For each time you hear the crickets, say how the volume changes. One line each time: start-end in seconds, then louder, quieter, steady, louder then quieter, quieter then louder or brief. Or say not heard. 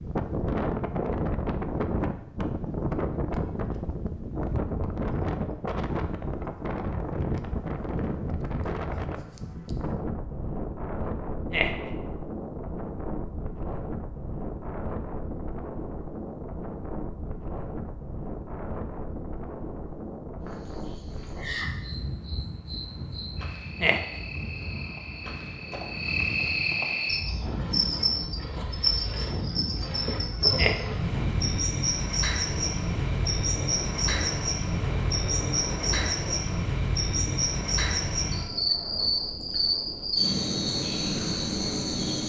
20.4-42.2 louder.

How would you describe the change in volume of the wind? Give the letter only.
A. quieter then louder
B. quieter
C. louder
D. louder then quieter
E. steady
B.